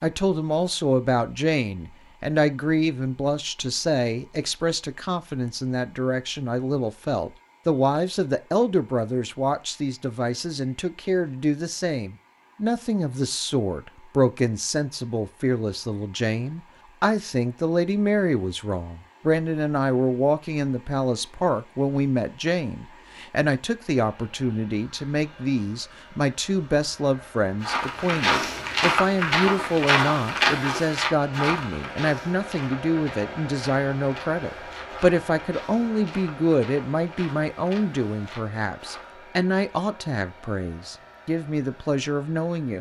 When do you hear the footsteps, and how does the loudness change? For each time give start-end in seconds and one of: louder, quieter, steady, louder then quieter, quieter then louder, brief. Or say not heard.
27.6-39.1 quieter.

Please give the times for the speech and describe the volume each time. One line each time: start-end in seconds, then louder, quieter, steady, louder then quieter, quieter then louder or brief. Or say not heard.
0.0-42.7 steady.